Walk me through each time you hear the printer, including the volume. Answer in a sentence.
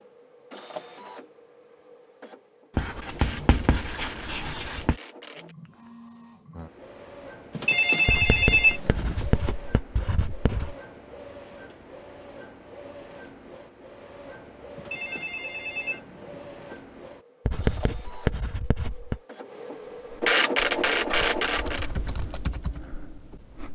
You can hear the printer from 0.0 to 21.9 s, getting louder.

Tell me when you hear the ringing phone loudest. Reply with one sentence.
The volume of the ringing phone peaks at 9 seconds.